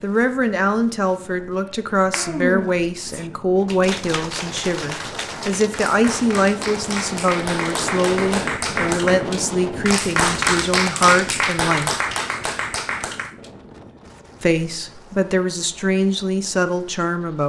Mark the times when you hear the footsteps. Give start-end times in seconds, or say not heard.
not heard.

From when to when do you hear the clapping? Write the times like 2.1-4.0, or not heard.
1.6-13.5.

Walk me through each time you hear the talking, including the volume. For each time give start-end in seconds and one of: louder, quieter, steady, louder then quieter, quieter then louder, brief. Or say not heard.
0.0-11.9 steady
14.4-17.4 brief.